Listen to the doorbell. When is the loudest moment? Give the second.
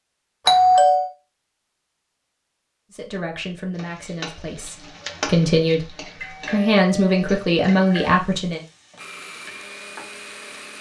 1 s.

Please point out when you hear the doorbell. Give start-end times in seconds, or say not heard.
0.5-1.1, 6.2-8.2.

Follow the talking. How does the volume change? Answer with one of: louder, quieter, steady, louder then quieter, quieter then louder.
quieter then louder.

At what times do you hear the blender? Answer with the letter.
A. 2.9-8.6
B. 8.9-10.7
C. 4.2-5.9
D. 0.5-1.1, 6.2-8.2
B.